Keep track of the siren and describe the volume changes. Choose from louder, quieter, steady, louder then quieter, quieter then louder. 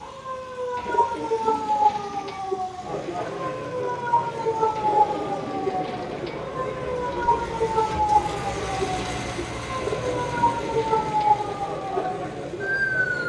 steady.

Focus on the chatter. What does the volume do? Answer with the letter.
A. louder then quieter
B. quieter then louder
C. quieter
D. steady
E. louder
D.